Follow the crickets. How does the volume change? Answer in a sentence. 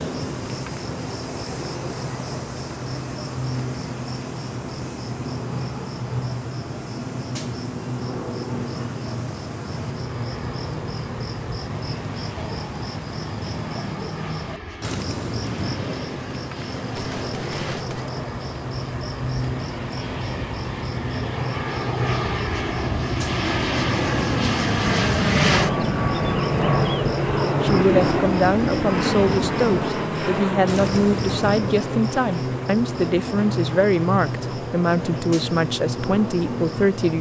The loudness of the crickets stays about the same.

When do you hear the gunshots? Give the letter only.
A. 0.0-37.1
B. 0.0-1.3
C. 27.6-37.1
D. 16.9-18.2
D.